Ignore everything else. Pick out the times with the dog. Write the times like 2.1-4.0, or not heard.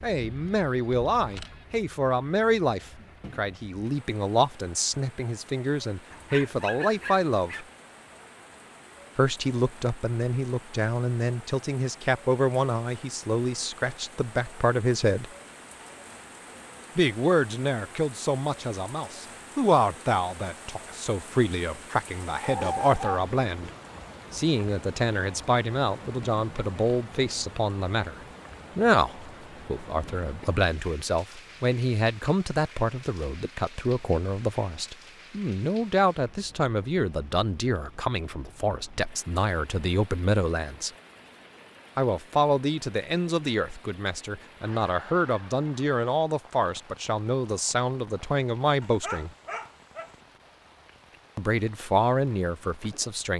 6.1-7.7, 22.4-23.8, 48.8-50.1.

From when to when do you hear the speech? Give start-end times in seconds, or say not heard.
0.0-7.7, 9.2-15.2, 16.9-23.7, 24.3-40.9, 42.0-49.3, 51.4-53.3.